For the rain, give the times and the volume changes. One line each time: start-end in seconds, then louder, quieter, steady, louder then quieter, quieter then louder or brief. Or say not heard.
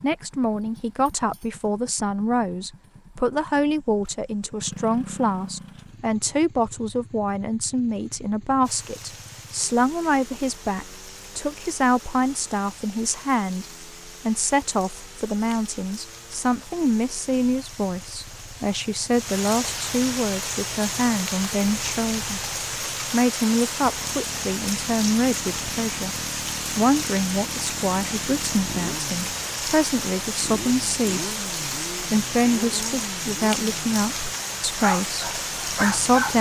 8.6-36.3 louder.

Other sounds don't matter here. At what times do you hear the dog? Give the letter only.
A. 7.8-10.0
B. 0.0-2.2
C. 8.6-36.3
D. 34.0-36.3
D.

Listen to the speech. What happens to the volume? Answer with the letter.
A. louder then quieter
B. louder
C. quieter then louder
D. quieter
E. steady
E.